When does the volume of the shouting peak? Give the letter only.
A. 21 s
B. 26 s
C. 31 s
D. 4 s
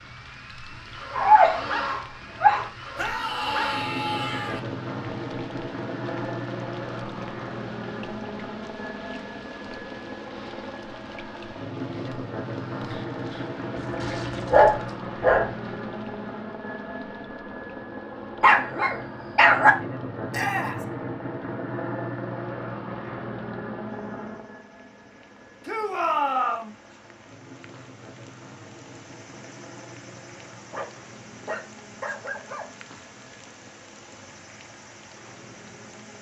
B.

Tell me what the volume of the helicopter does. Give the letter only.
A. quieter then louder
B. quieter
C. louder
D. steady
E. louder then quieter
B.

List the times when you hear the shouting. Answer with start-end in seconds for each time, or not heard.
3.0-4.6, 20.3-20.9, 25.6-26.7.